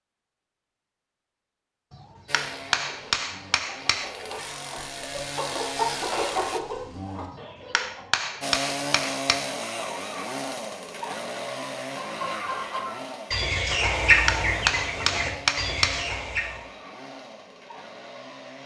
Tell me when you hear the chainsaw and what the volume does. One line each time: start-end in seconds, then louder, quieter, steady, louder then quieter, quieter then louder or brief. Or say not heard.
2.2-6.6 louder
8.4-18.6 quieter.